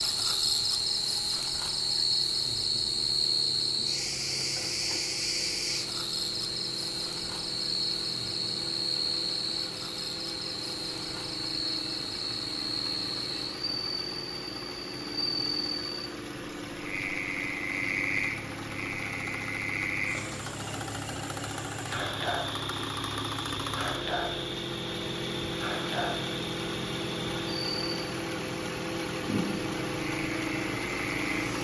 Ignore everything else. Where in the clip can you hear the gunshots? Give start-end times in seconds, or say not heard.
not heard.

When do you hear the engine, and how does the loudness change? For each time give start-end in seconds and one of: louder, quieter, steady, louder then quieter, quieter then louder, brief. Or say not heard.
0.0-31.6 louder.